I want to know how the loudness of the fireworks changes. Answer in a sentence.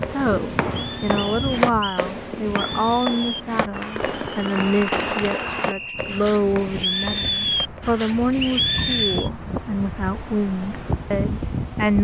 The loudness of the fireworks goes up.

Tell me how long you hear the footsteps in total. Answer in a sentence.
The footsteps can be heard for 8 seconds in total.